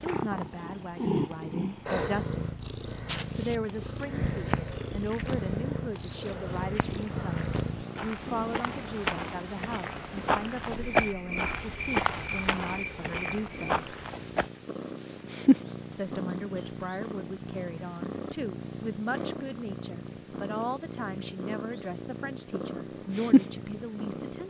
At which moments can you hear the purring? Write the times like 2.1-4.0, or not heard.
0.0-24.4.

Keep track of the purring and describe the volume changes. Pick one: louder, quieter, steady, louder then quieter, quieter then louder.
quieter then louder.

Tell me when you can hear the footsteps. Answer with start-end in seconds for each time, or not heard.
3.0-14.5.